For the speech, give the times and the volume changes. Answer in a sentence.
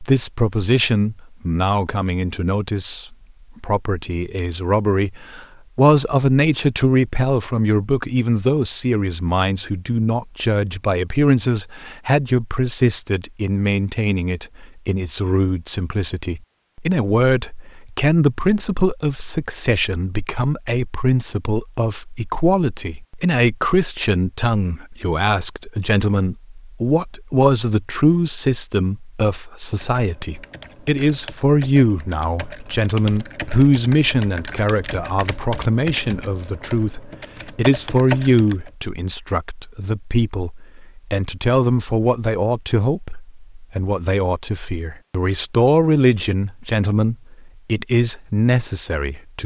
The speech can be heard from 0.0 to 49.4 s, at a steady volume.